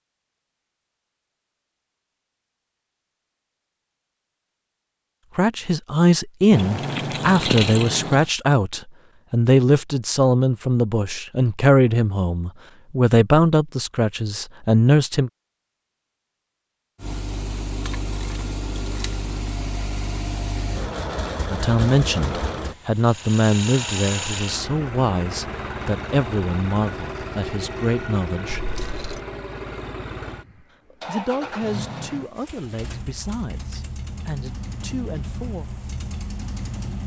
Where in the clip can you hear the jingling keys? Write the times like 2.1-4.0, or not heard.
6.5-8.2, 17.9-19.1, 28.5-29.2.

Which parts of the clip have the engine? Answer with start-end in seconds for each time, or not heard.
17.0-37.0.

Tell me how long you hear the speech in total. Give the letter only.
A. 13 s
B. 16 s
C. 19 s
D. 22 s
D.